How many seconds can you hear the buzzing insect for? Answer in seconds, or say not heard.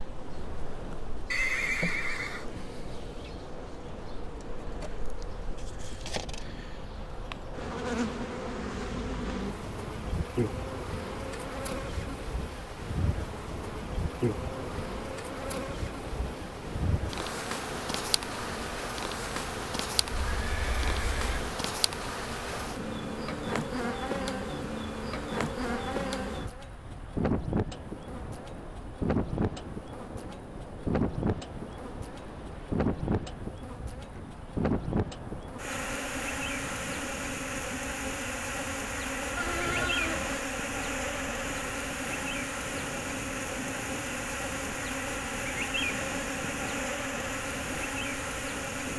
49 s.